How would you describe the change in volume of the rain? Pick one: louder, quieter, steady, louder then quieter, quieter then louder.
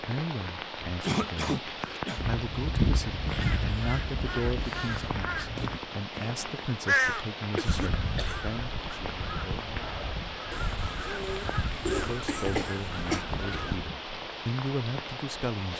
steady.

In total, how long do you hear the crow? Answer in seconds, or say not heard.
12 s.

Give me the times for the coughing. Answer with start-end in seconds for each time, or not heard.
1.0-2.2, 7.5-8.4, 10.5-13.2.